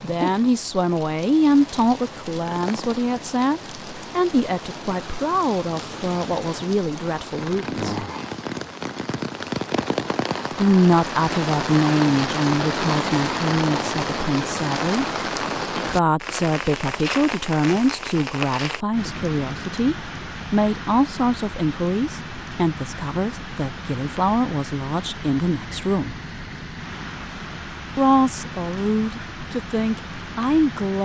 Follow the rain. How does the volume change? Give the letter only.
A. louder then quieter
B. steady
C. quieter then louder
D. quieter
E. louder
A.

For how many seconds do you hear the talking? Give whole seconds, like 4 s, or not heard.
26 s.